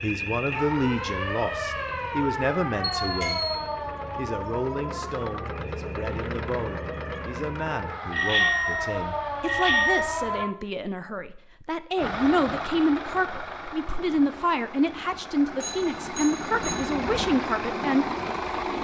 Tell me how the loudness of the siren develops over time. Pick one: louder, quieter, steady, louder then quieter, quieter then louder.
quieter then louder.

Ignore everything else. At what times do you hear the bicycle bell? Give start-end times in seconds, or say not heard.
3.0-3.5, 8.1-10.1, 15.6-16.9.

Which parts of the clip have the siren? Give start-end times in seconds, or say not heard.
0.0-10.5.